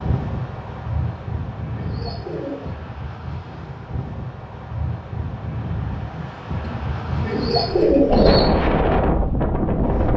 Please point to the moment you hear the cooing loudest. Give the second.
8 s.